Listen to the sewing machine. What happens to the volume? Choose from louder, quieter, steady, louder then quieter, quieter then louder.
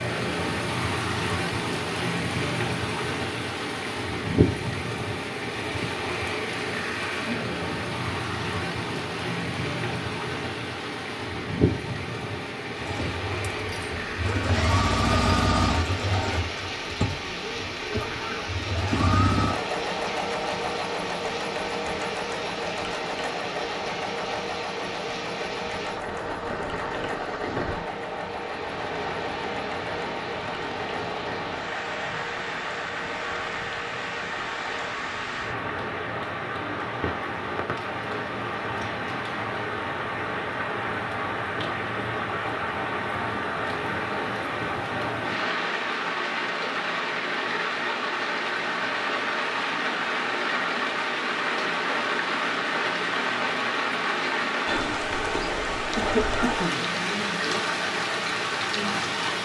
quieter.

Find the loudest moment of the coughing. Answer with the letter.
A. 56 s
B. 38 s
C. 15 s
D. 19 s
A.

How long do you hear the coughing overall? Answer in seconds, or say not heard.
2 s.